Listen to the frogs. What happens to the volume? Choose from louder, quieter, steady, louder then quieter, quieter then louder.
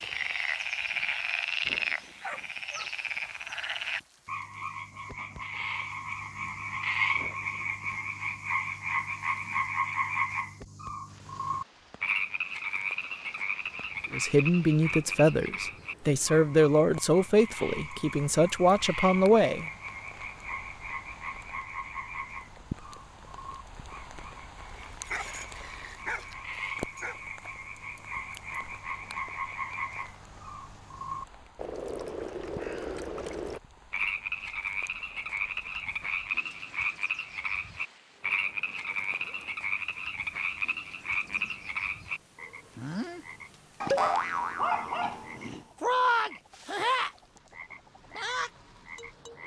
quieter then louder.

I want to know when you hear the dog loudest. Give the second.
45 s.